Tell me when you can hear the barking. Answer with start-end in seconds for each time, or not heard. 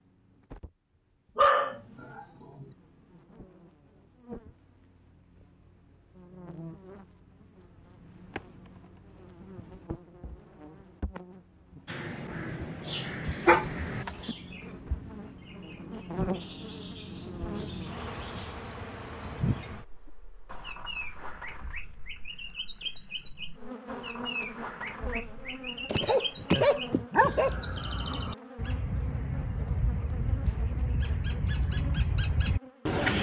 1.4-2.6, 13.4-14.3, 25.9-27.5.